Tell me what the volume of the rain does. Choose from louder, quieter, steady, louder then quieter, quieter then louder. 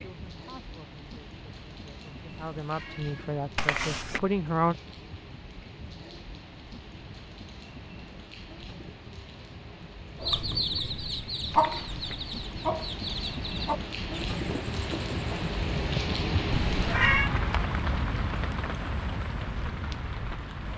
louder.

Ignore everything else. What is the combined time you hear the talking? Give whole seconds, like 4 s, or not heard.
5 s.